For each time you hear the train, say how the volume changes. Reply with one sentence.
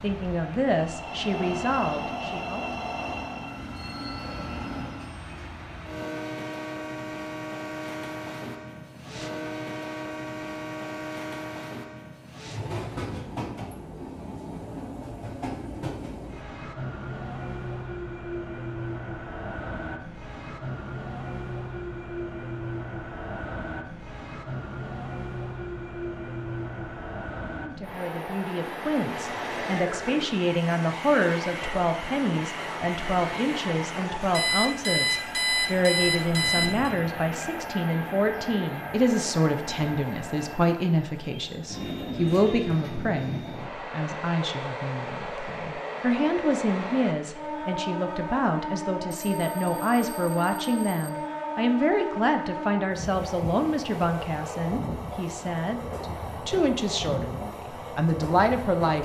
The train can be heard from 0.0 to 59.0 s, at a steady volume.